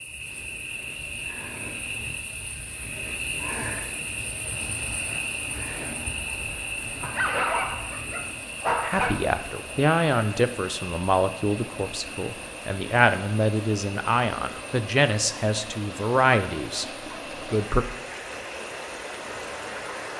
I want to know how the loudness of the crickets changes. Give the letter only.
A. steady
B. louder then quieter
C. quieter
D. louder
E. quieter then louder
C.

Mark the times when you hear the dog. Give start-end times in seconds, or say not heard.
7.0-9.2.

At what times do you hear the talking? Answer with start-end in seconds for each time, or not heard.
8.8-16.9, 17.4-17.9.